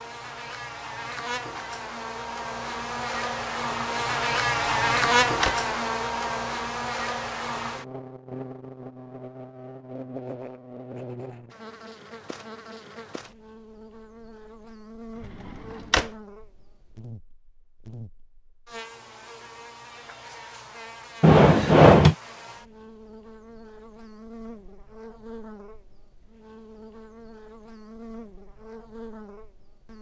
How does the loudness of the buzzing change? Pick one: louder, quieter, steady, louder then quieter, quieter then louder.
quieter.